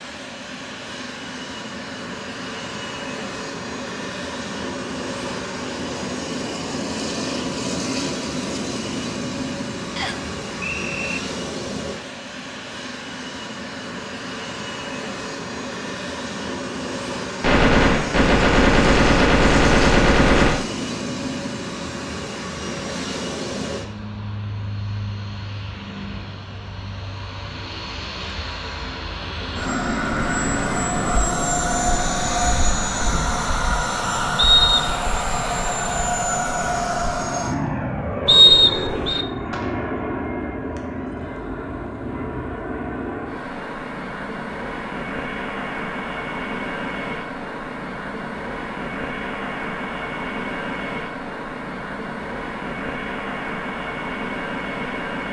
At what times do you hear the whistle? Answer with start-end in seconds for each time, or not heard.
9.9-11.2, 34.4-35.0, 38.2-39.2.